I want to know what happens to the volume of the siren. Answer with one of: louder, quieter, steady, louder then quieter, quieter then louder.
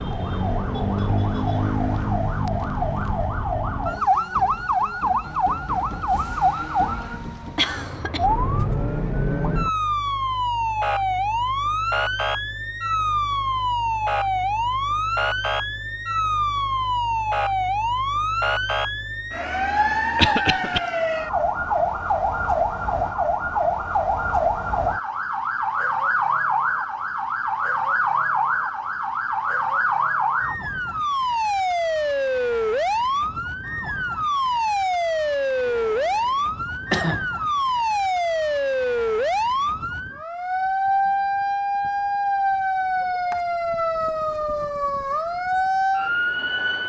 steady.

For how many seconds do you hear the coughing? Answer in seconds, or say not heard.
2 s.